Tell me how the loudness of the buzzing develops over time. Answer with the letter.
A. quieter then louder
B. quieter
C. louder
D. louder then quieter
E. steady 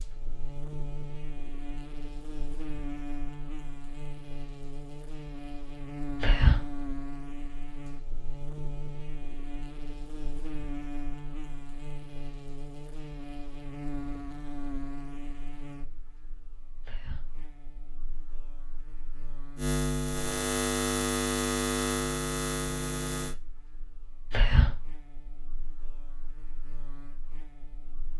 D.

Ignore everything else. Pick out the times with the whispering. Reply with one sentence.
You can hear the whispering from 6.2 to 6.6 s, from 16.8 to 17.2 s and from 24.3 to 24.8 s.